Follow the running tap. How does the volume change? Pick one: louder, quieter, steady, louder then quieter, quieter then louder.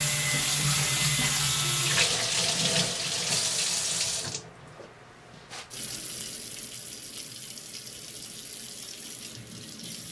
quieter.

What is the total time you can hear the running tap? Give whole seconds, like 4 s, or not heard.
10 s.